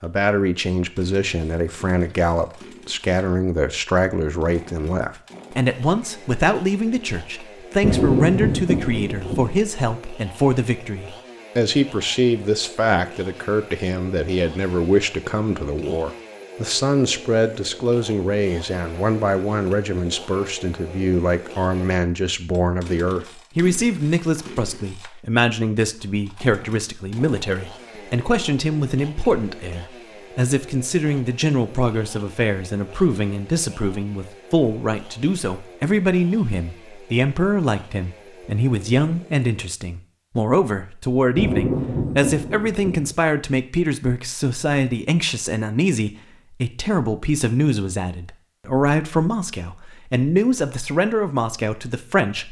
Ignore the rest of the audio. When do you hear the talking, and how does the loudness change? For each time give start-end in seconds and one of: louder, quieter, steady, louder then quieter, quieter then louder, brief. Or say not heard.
0.0-52.4 steady.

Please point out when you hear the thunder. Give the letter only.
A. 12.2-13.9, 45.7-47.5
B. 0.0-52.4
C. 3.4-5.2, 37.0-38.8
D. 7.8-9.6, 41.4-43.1
D.